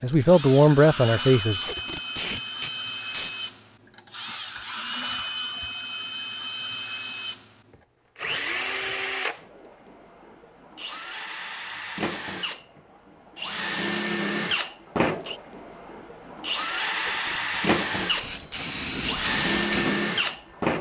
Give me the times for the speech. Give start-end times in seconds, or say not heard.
0.0-1.6.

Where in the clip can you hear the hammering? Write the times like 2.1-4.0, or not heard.
not heard.